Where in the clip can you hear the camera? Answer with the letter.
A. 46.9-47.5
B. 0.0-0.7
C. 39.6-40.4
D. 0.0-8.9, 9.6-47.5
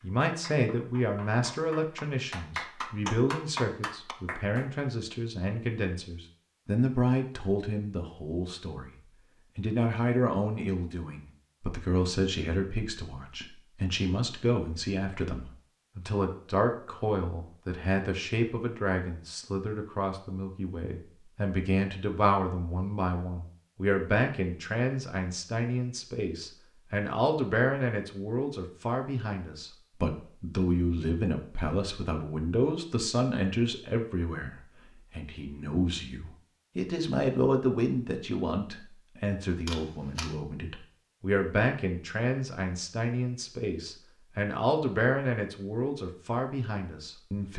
C.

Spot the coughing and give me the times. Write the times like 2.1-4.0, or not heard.
not heard.